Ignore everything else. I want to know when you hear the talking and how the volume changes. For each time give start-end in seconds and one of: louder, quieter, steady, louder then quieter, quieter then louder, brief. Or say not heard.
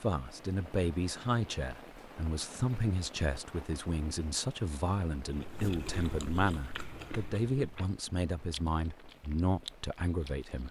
0.0-10.6 steady.